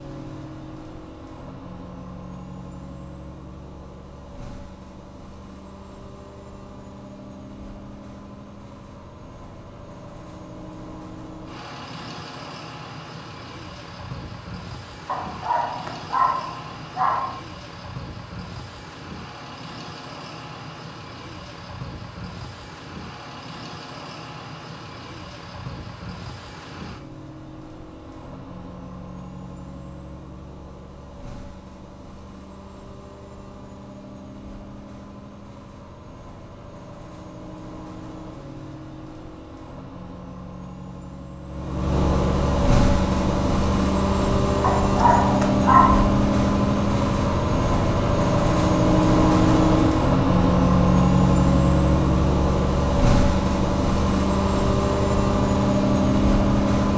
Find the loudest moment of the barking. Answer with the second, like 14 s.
46 s.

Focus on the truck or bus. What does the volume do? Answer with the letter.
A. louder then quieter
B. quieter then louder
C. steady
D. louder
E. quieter
D.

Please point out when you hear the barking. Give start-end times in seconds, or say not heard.
15.1-17.4, 44.6-46.1.